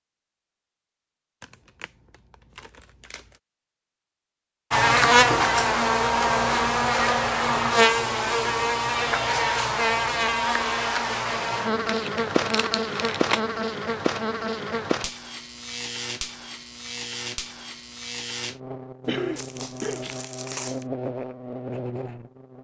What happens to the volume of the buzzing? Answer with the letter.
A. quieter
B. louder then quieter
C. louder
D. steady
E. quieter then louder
A.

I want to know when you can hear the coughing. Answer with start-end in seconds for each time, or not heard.
19.1-20.2.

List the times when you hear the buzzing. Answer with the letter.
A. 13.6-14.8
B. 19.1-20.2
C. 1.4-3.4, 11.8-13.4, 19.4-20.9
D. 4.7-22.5
D.